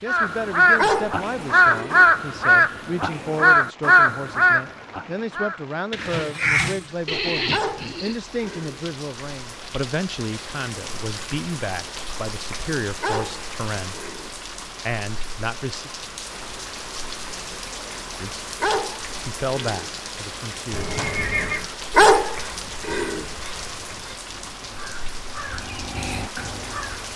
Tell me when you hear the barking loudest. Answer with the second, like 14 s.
22 s.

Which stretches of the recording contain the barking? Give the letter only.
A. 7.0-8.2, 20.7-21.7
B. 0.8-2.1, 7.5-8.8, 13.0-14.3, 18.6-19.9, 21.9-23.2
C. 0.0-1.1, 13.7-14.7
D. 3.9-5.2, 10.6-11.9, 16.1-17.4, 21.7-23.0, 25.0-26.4
B.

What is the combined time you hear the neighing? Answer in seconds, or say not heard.
2 s.